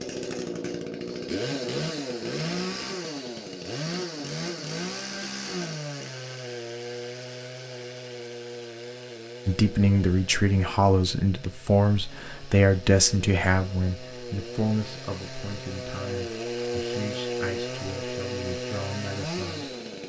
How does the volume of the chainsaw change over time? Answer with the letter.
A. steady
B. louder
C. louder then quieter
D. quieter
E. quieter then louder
E.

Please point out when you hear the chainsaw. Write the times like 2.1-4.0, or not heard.
0.0-20.0.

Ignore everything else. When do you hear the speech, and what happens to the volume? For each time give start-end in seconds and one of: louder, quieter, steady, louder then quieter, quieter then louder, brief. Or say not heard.
9.4-19.7 quieter.